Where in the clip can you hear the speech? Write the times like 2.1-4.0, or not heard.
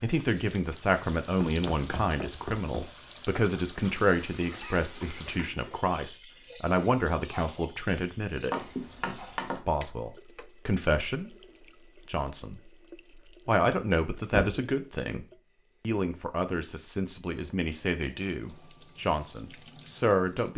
0.0-8.7, 9.7-11.3, 12.1-12.8, 13.4-15.2, 15.8-20.5.